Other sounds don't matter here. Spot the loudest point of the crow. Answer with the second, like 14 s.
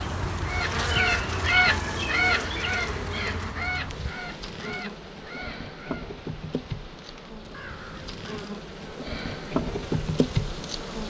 2 s.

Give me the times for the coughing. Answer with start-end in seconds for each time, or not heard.
not heard.